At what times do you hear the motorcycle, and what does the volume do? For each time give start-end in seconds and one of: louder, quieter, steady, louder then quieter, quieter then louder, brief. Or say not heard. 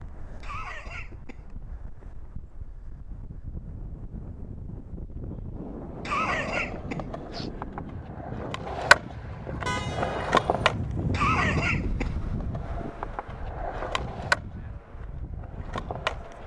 not heard.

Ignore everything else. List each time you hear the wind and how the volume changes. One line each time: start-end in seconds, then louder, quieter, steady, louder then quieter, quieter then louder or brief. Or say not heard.
0.0-16.4 louder then quieter.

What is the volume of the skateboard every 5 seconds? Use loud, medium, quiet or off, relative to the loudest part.
off, loud, loud, medium.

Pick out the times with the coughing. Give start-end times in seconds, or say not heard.
0.4-1.4, 6.0-7.5, 11.1-12.1.